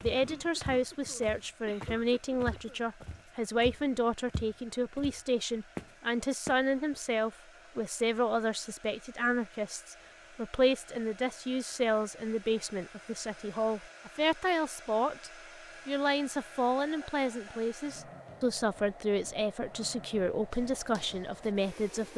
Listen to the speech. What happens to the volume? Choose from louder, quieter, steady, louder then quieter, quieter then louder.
steady.